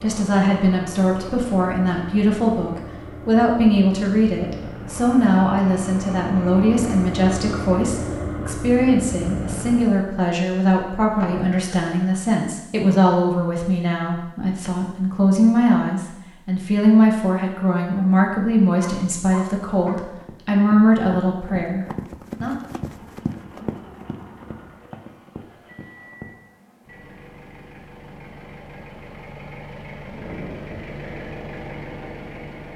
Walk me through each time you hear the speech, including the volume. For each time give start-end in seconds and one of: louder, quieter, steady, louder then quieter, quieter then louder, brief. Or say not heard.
0.0-22.6 steady.